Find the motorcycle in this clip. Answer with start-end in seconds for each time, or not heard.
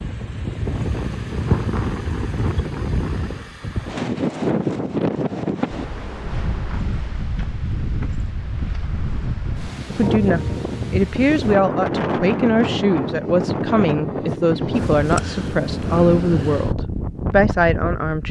0.0-2.6.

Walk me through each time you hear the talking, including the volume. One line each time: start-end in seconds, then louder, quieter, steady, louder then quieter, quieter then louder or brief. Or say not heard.
9.9-18.2 steady.